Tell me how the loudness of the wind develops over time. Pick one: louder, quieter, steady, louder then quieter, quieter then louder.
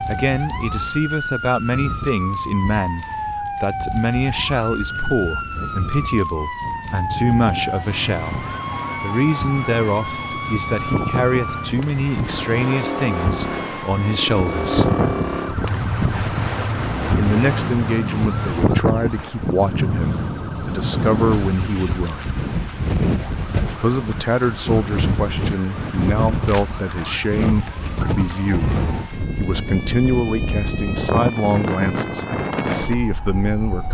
louder.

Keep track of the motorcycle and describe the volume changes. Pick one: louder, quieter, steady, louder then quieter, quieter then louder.
louder.